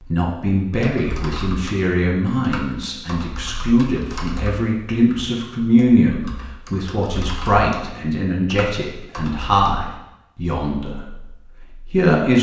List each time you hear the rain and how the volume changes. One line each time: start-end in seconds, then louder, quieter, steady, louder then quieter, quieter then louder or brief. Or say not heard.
not heard.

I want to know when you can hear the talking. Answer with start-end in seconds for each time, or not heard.
0.1-11.2, 11.9-12.3.